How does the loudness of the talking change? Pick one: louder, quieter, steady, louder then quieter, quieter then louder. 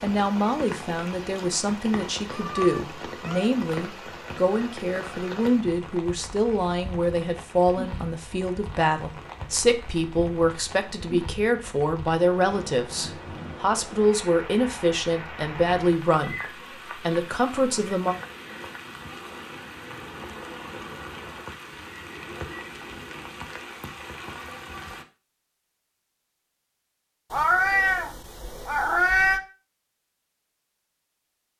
steady.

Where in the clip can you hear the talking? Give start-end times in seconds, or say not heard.
0.0-18.1.